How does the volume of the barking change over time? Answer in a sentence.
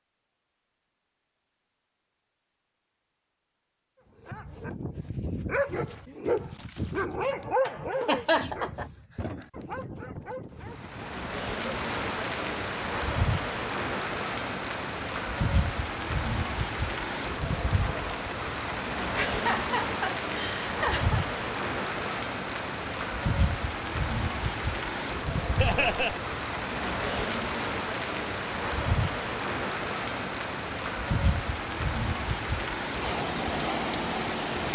The volume of the barking goes down.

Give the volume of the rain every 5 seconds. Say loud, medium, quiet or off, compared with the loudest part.
off, off, loud, loud, loud, loud, loud.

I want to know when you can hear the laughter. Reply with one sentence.
The laughter can be heard from 8.0 to 8.8 s, from 19.1 to 21.2 s and from 25.6 to 26.1 s.